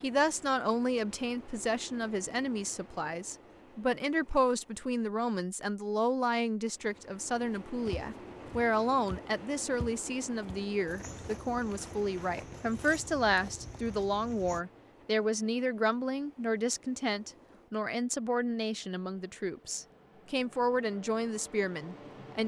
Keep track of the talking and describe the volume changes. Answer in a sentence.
The loudness of the talking stays about the same.